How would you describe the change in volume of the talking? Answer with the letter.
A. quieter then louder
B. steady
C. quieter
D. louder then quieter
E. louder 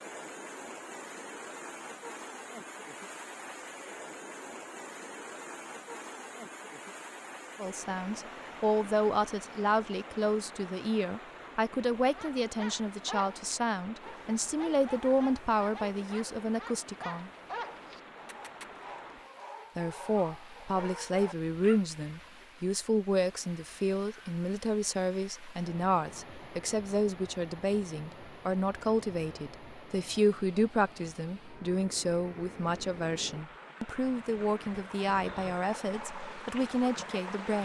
B.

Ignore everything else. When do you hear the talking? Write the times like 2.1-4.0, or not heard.
7.5-17.3, 19.8-37.6.